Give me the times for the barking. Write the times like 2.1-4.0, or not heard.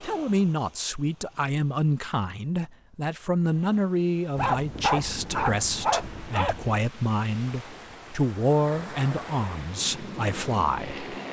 4.3-6.8.